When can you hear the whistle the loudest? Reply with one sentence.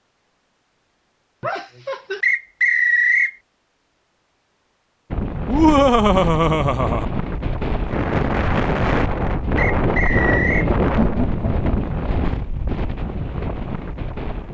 The volume of the whistle peaks at 3 seconds.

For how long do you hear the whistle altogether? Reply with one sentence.
The whistle can be heard for 2 seconds in total.